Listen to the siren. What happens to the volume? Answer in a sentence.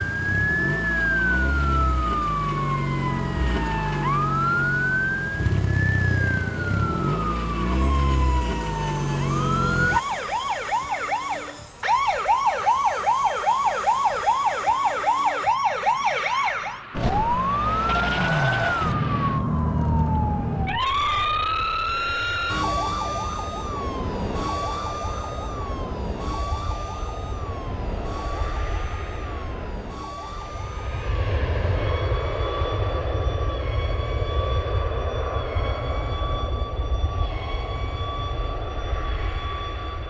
The loudness of the siren goes down.